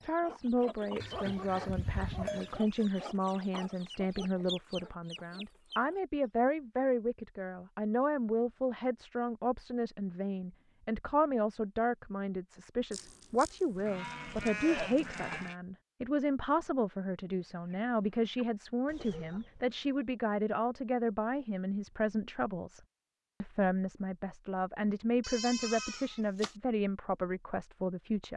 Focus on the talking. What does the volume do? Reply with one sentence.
The volume of the talking stays about the same.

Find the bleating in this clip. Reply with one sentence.
The bleating can be heard from 1.0 to 2.6 s, from 12.9 to 15.6 s and from 25.2 to 26.6 s.